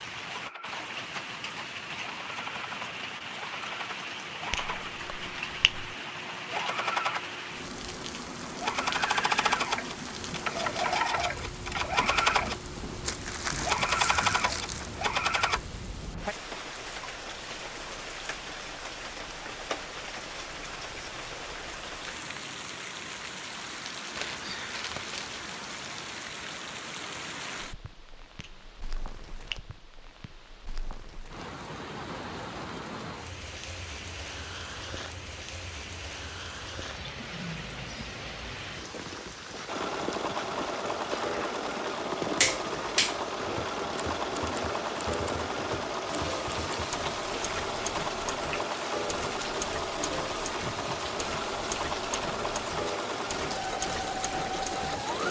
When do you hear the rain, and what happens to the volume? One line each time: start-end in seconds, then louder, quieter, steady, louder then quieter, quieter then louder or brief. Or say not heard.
0.0-55.2 steady.